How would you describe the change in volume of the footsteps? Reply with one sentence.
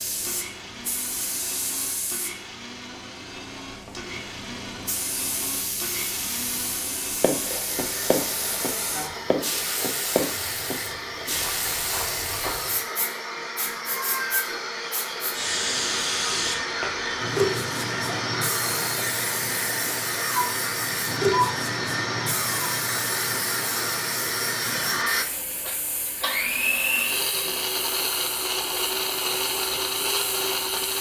The volume of the footsteps goes down.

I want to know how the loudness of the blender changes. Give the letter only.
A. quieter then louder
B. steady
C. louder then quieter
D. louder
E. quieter
D.